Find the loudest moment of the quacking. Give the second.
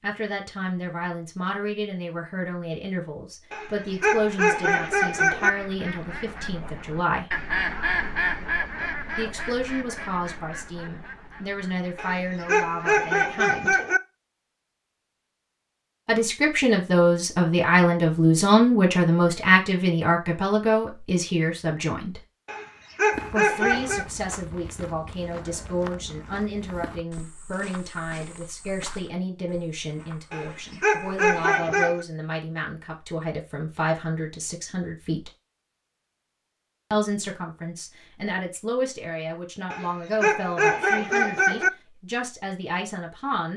8 s.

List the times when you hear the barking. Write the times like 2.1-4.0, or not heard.
3.5-5.5, 11.9-14.0, 22.4-24.1, 30.3-32.0, 39.7-41.7.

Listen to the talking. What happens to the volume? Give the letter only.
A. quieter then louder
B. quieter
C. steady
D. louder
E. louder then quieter
E.